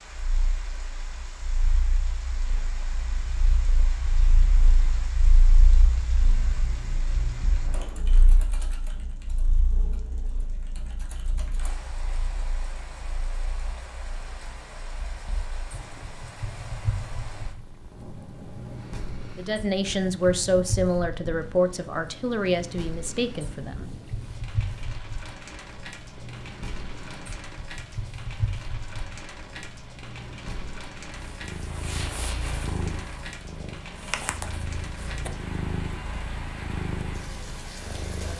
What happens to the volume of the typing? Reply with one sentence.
The volume of the typing goes down, then up.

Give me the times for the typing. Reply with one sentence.
The typing can be heard from 6.7 to 11.8 s.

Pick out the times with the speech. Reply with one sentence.
You can hear the speech from 19.4 to 23.9 s.